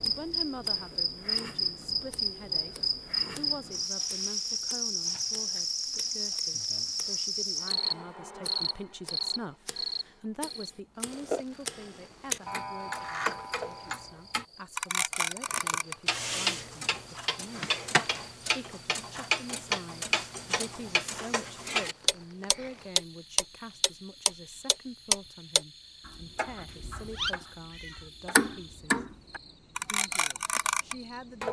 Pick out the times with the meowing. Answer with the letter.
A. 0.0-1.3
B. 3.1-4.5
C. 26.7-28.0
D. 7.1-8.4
C.